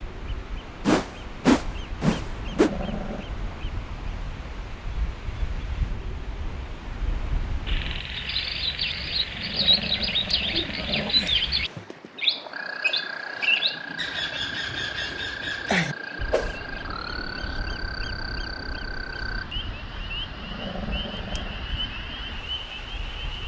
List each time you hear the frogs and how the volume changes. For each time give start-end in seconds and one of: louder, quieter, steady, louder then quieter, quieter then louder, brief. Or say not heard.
7.7-23.4 steady.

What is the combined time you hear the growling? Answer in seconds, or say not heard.
5 s.